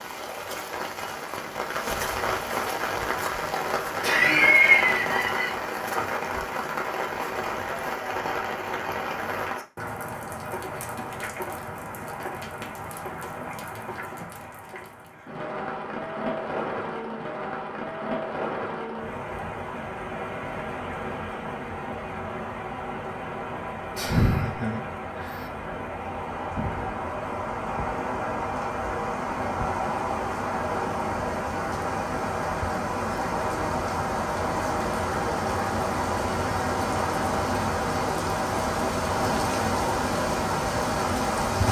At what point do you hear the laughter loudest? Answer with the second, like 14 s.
5 s.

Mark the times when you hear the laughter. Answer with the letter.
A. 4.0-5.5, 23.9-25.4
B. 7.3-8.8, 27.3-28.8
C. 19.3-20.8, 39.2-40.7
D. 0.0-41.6
A.